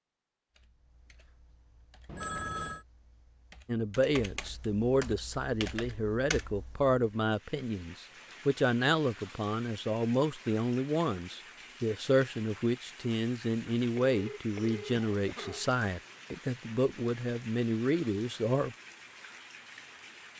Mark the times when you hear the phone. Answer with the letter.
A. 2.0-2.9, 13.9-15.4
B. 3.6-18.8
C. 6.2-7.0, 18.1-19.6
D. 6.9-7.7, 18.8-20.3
A.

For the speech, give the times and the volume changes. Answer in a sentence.
You can hear the speech from 3.6 to 18.8 s, at a steady volume.